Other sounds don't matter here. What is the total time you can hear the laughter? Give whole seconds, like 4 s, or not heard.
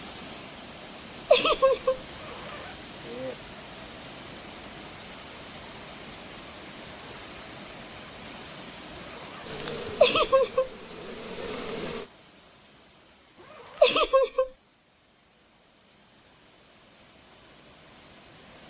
2 s.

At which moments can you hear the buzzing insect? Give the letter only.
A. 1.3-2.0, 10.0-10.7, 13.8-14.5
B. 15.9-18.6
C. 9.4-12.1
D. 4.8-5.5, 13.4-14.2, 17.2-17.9
C.